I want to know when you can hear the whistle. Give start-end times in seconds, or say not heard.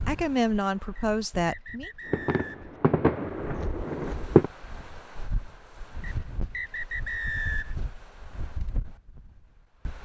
0.9-2.8, 6.0-7.8.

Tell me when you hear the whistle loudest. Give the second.
7 s.